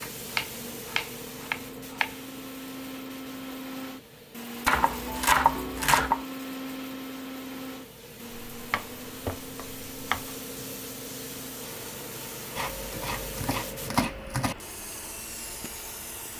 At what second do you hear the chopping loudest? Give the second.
5 s.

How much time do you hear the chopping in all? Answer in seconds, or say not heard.
7 s.